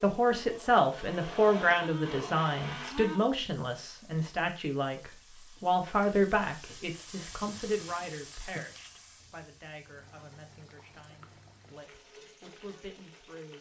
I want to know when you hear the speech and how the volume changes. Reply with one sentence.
The speech can be heard from 0.0 to 13.5 s, getting quieter.